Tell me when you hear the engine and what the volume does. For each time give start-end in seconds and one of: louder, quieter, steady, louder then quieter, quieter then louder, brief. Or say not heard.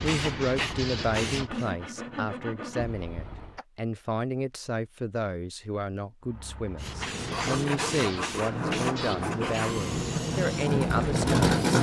6.2-11.7 louder.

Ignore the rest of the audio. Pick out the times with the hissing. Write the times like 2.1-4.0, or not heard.
0.0-1.8, 6.8-11.7.